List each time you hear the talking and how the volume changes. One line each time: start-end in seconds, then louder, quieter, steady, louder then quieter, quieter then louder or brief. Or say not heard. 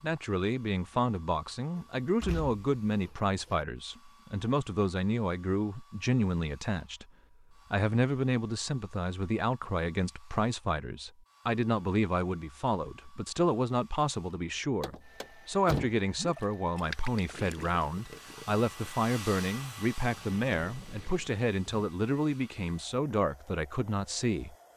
0.0-7.0 steady
7.7-24.6 steady.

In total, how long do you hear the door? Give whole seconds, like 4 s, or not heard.
3 s.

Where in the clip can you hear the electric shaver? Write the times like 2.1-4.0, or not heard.
not heard.